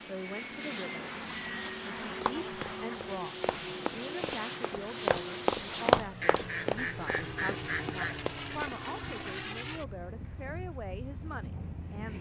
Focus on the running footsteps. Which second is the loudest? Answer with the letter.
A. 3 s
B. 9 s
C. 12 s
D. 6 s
D.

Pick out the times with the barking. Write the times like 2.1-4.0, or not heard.
not heard.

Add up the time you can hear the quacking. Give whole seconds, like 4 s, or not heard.
4 s.